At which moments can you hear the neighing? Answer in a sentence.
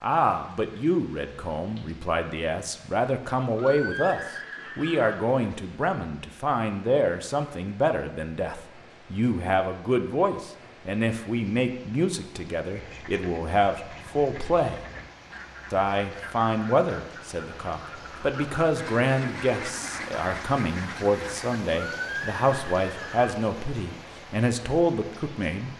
The neighing can be heard from 3.5 to 5.2 s and from 21.7 to 23.4 s.